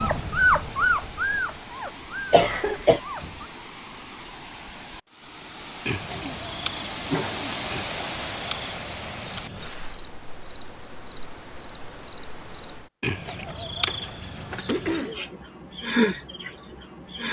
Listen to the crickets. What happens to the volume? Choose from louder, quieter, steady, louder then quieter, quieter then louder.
quieter then louder.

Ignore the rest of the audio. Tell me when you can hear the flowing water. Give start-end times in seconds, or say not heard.
0.0-10.2.